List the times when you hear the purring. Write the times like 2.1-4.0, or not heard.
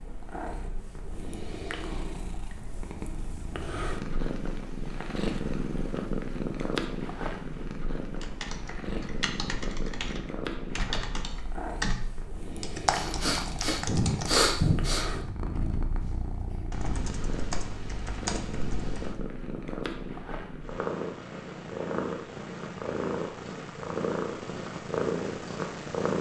0.0-26.1.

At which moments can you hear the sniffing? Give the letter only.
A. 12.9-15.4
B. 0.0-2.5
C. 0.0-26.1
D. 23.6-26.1
A.